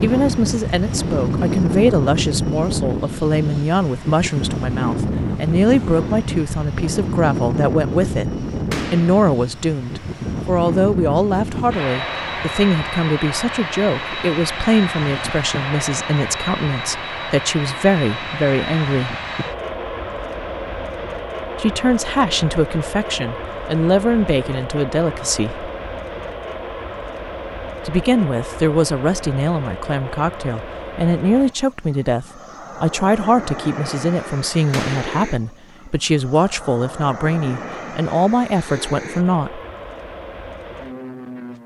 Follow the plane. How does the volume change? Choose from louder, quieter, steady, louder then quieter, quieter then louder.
quieter.